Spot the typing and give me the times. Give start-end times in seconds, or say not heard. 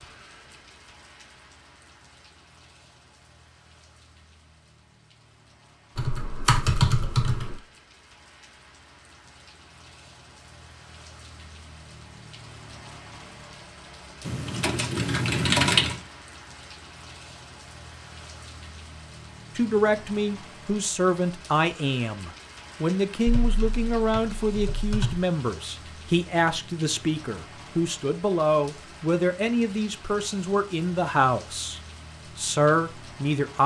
6.0-7.5, 14.2-15.9, 23.2-25.2.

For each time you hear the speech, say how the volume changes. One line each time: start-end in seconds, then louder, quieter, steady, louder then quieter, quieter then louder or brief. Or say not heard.
19.6-33.6 steady.